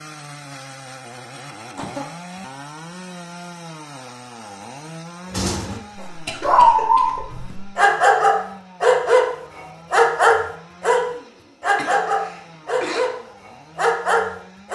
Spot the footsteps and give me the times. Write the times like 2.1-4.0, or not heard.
not heard.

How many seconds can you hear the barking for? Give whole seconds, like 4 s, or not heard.
9 s.